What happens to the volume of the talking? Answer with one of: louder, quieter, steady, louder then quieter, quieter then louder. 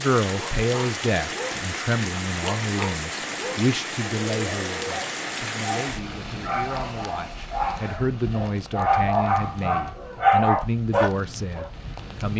quieter then louder.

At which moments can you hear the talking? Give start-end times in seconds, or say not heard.
0.0-12.3.